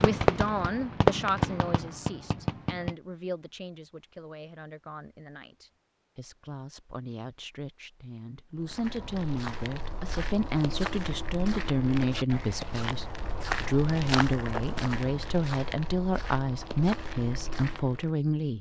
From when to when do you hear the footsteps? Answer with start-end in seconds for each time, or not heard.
8.6-18.1.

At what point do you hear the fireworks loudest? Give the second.
1 s.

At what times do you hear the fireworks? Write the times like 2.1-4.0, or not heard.
0.0-3.0.